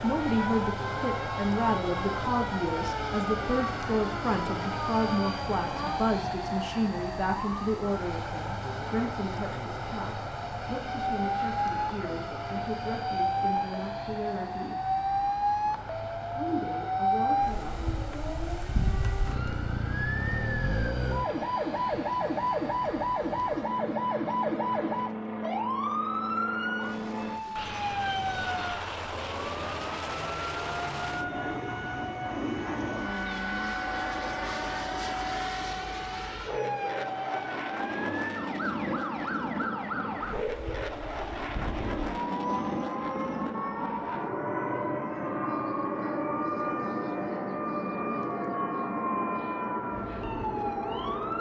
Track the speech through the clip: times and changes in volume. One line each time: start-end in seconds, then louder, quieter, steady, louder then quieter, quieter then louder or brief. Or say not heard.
0.0-14.8 quieter
16.4-17.8 brief.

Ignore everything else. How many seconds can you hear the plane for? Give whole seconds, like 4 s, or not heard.
51 s.